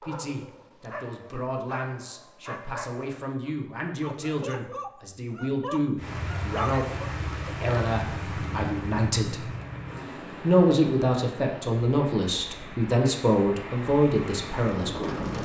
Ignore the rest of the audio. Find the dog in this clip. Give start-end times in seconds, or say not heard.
0.0-6.9.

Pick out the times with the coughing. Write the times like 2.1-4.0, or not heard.
not heard.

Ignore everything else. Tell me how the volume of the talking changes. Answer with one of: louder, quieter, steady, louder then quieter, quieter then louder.
louder.